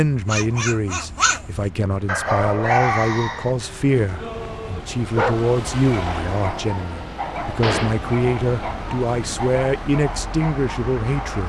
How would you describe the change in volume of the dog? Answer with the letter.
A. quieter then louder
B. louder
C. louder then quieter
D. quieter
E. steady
D.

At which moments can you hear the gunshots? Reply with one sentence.
The gunshots can be heard from 7.6 to 8.0 s.